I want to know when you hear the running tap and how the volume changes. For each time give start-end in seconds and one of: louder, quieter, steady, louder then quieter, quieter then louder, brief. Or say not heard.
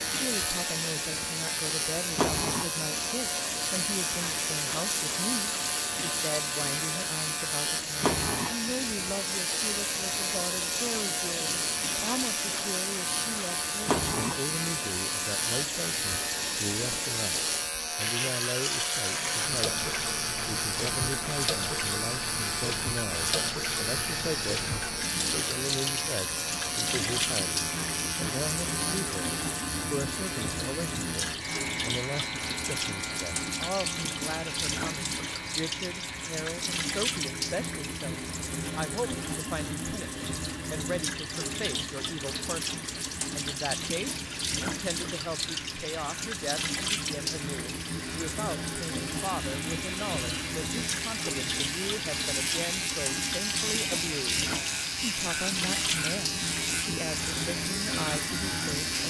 0.0-59.0 steady.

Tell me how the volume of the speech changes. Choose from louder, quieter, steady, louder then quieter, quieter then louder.
steady.